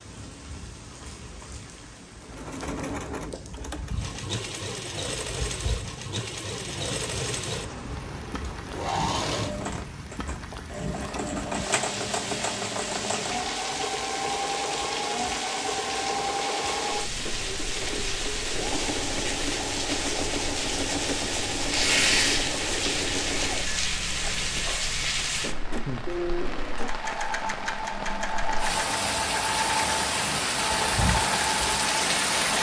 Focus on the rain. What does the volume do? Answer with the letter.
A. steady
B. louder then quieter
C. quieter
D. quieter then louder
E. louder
E.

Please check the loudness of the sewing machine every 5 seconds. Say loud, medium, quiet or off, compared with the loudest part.
medium, loud, loud, loud, loud, loud, loud.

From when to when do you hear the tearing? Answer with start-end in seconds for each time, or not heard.
21.7-22.4.